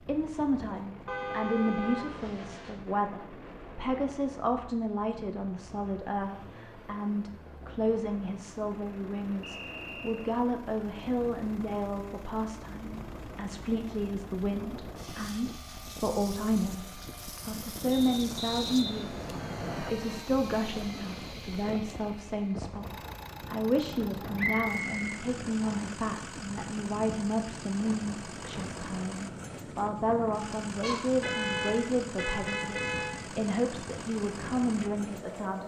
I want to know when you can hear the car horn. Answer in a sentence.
The car horn can be heard from 1.1 to 2.8 s, from 19.9 to 20.4 s and from 30.8 to 33.1 s.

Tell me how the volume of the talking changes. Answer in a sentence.
The loudness of the talking stays about the same.